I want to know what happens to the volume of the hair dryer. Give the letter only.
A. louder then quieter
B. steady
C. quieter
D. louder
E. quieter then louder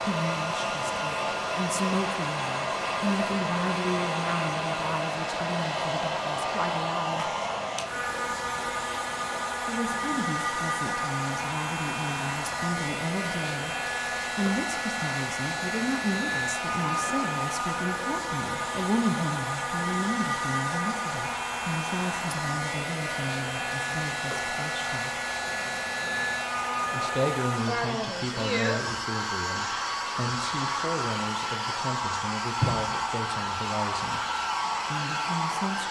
B.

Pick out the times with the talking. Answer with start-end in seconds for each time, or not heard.
0.0-7.3, 9.7-13.8, 14.3-25.1, 26.9-34.2, 34.9-35.8.